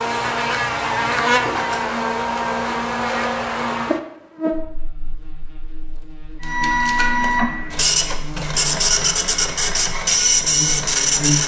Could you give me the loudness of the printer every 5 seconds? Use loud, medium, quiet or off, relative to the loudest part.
off, loud, loud.